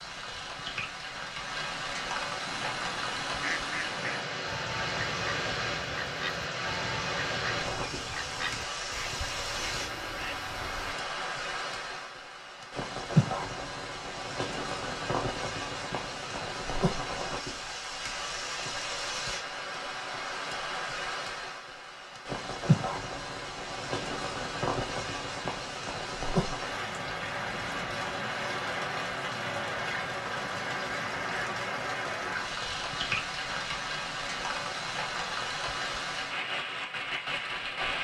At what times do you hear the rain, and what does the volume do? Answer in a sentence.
You can hear the rain from 0.0 to 37.9 s, at a steady volume.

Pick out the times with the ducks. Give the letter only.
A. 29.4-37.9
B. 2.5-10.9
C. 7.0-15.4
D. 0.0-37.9
B.